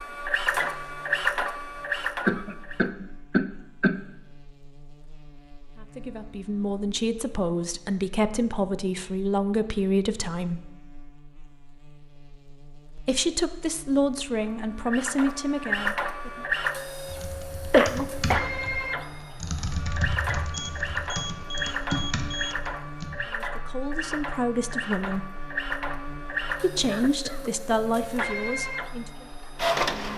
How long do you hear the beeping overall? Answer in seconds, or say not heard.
2 s.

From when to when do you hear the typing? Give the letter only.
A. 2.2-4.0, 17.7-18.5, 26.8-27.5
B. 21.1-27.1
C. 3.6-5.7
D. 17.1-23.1
D.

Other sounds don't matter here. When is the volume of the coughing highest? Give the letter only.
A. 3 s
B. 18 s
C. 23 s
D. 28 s
B.